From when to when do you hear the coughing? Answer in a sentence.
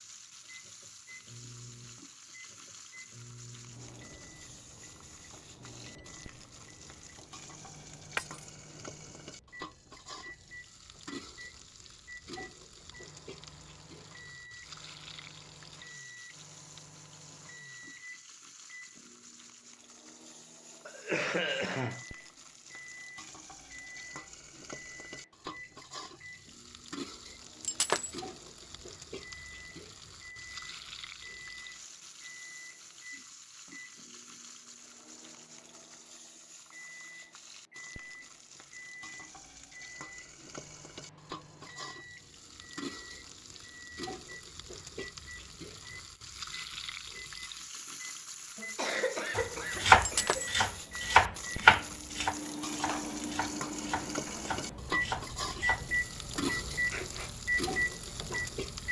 The coughing can be heard from 20.9 to 22.1 s and from 48.5 to 50.5 s.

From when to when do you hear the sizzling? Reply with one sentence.
You can hear the sizzling from 0.0 to 58.8 s.